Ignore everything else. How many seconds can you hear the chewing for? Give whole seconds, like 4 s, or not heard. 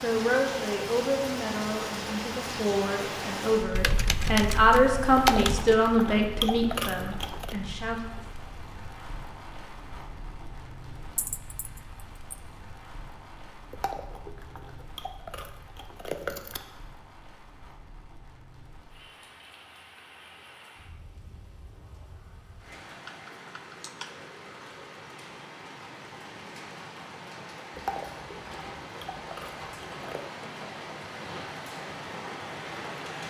8 s.